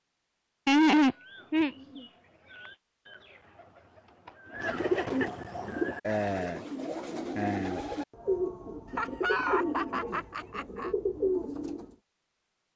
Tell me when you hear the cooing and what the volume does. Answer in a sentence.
The cooing can be heard from 1.1 to 11.9 s, getting louder.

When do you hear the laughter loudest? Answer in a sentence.
The loudest moment of the laughter is at 1 second.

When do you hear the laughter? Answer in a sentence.
The laughter can be heard from 0.7 to 2.0 s, from 4.7 to 5.3 s and from 8.9 to 10.9 s.